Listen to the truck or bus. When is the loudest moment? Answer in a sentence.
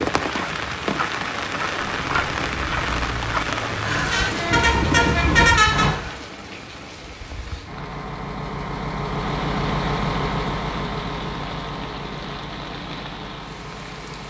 The loudest moment of the truck or bus is at 5 seconds.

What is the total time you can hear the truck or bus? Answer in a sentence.
You can hear the truck or bus for 11 seconds altogether.